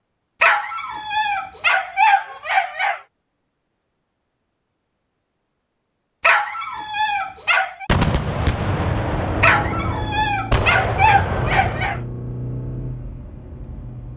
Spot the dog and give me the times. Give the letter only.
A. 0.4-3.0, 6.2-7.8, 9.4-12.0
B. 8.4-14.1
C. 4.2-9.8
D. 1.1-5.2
A.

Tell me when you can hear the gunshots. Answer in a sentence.
The gunshots can be heard from 7.8 to 12.1 s.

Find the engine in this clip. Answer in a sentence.
You can hear the engine from 8.4 to 14.1 s.